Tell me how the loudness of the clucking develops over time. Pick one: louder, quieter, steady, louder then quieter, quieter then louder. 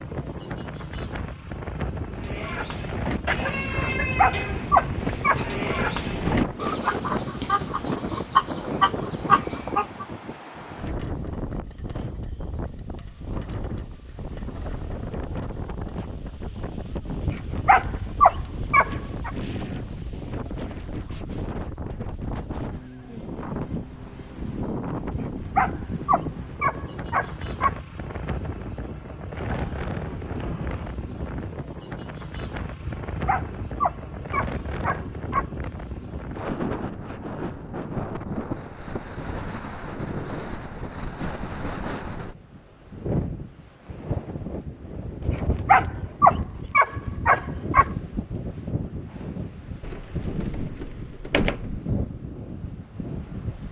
louder.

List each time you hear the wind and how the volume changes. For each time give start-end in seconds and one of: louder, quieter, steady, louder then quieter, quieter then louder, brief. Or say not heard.
0.0-53.6 steady.